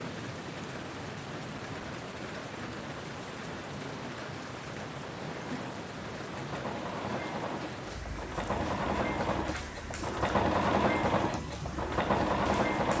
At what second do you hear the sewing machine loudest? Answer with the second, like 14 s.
11 s.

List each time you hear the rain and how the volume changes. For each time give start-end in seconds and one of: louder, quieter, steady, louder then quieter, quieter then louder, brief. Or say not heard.
0.0-12.9 steady.